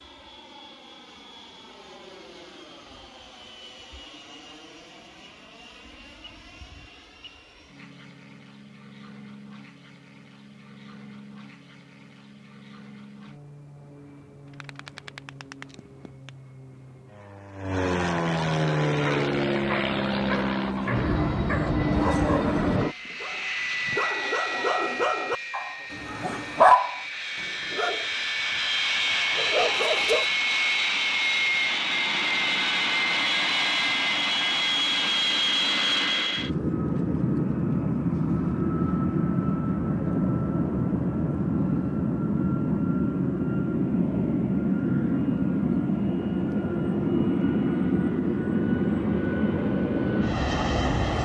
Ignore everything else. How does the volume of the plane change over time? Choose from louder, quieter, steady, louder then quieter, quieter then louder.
louder.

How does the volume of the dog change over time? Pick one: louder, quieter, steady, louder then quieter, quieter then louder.
louder then quieter.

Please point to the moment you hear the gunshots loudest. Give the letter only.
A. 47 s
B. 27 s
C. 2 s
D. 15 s
D.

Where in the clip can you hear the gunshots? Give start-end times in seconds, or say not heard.
14.4-16.4.